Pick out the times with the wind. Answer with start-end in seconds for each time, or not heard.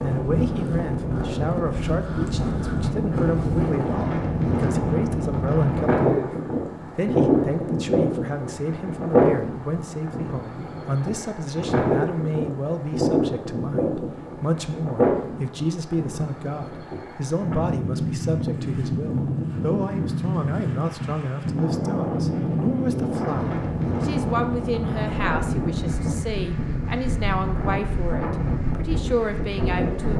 0.0-30.1.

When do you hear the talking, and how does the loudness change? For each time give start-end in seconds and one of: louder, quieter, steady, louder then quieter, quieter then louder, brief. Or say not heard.
0.0-6.3 steady
7.0-30.1 steady.